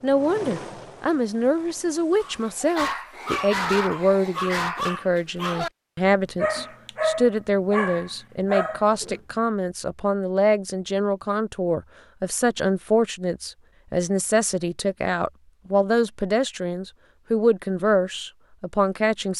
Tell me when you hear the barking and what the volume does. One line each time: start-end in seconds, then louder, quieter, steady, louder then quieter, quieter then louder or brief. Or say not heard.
2.2-9.2 steady.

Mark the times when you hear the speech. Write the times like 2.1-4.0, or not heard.
0.0-19.3.